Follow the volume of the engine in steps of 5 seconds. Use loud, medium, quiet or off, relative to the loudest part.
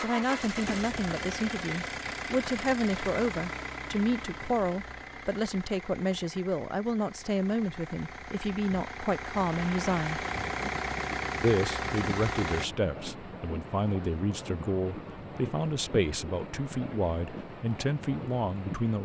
loud, medium, loud, off.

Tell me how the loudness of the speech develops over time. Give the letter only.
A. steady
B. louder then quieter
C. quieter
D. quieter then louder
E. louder
A.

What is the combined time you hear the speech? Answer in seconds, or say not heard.
18 s.